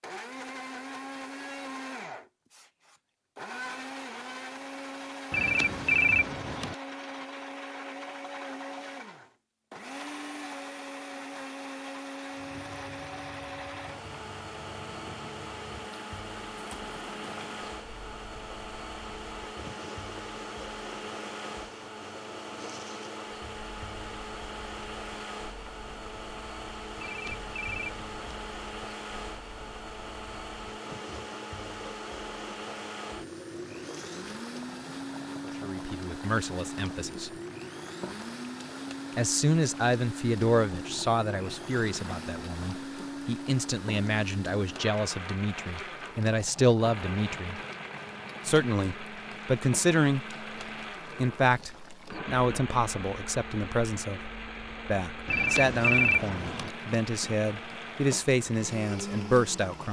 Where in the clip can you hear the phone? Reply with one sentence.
You can hear the phone from 5.3 to 6.8 s, from 26.9 to 28.4 s and from 55.2 to 56.8 s.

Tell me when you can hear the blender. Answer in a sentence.
The blender can be heard from 0.0 to 59.8 s.